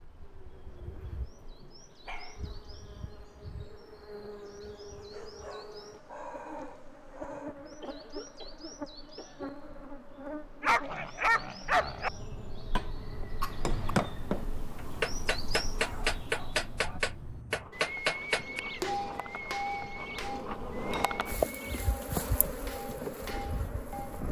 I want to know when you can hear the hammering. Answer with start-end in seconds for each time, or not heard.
13.4-24.2.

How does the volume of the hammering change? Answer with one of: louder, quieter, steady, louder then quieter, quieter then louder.
quieter.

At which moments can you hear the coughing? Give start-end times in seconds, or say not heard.
7.8-9.6, 12.8-13.7.